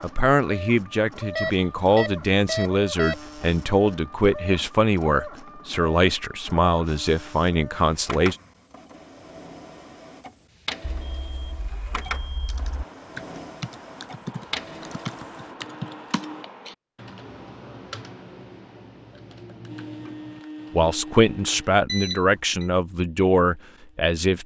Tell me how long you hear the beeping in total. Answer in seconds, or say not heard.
5 s.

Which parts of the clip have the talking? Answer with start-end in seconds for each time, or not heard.
0.0-8.3, 20.7-24.4.